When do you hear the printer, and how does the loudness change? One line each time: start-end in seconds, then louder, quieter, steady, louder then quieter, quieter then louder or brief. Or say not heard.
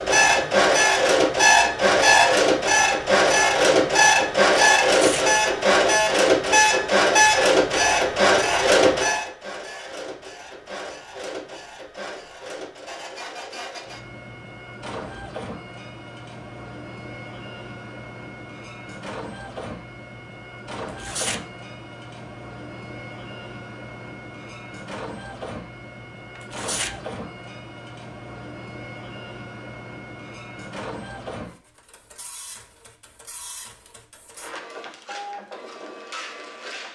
0.0-36.9 quieter.